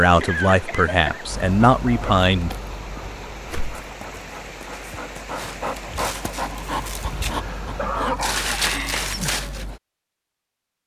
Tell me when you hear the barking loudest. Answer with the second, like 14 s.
9 s.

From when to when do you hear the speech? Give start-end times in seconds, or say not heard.
0.0-2.5.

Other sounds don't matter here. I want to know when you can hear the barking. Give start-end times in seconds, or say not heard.
1.2-9.8.